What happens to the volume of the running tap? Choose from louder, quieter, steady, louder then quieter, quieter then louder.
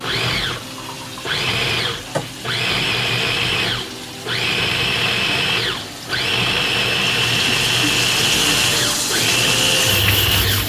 louder.